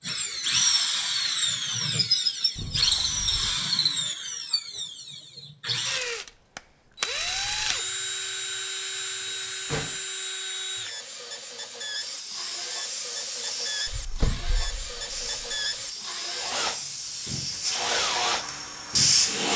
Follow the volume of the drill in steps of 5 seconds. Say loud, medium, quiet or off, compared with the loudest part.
loud, medium, medium, medium.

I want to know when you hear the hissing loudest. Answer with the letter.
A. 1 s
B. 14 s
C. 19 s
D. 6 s
C.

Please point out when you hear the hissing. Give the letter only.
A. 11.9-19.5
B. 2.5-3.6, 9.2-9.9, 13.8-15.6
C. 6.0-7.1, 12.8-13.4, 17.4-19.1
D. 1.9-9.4
A.